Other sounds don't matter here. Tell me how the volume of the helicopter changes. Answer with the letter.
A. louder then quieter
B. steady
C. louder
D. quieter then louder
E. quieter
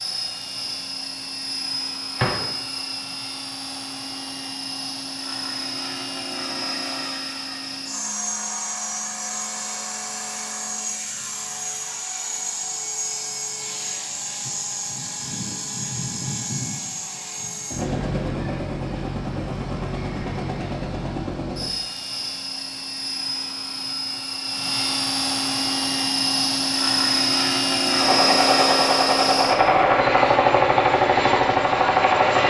C.